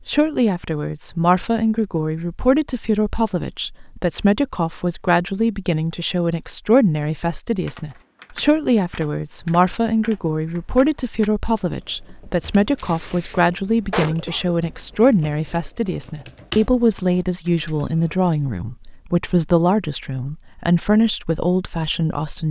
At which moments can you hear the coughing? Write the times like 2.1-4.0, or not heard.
13.9-15.0.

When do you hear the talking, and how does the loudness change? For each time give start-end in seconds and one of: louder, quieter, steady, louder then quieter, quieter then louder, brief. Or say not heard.
0.1-22.4 steady.